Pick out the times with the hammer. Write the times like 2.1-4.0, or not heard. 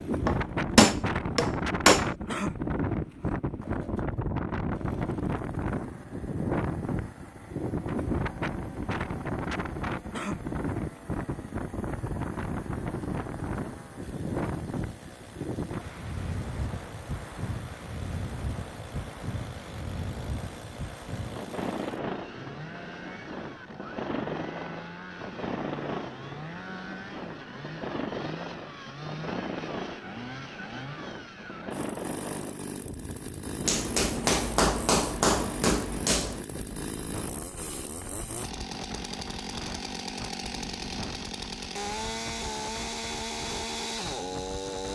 0.2-2.1, 33.6-36.5.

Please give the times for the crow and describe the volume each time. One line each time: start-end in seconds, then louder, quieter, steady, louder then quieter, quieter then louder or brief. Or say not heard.
not heard.